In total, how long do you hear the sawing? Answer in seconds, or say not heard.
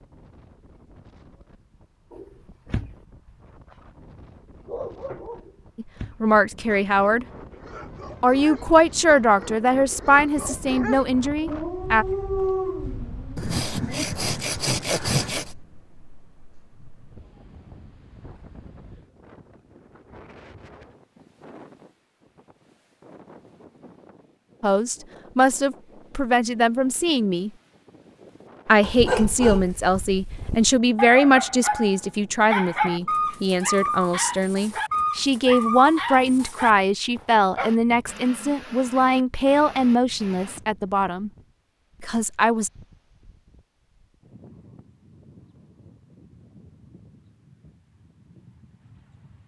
2 s.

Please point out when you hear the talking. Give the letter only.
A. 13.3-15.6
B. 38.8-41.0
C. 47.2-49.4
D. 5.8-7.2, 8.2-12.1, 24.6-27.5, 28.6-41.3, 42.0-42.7
D.